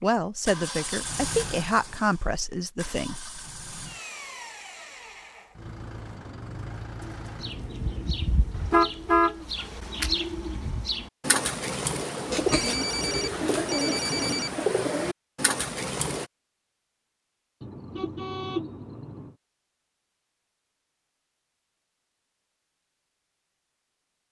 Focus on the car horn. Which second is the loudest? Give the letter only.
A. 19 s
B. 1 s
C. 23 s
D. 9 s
D.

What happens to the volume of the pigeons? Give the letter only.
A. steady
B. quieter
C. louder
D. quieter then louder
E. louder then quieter
C.